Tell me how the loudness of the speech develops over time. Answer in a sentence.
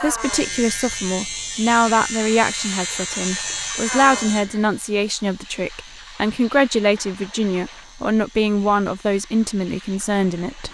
The loudness of the speech stays about the same.